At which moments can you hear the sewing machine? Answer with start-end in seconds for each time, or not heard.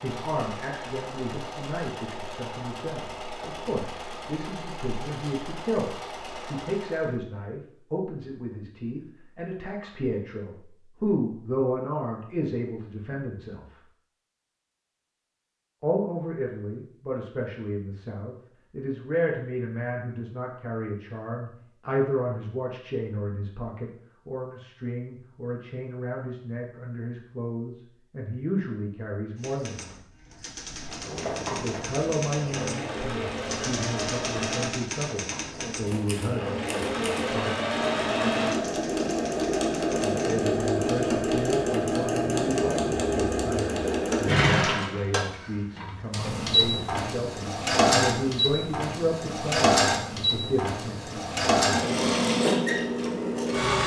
0.0-7.2, 30.7-53.8.